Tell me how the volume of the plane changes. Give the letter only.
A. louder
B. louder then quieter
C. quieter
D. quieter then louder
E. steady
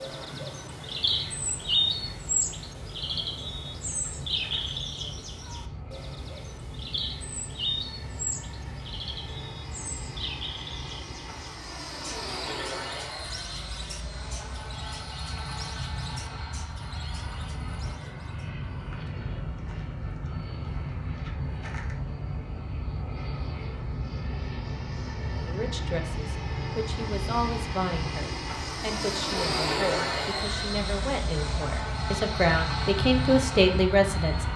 A.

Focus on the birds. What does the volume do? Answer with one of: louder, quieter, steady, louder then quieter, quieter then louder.
quieter.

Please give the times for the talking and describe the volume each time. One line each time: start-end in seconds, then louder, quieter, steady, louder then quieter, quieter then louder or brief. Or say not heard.
25.4-34.5 louder.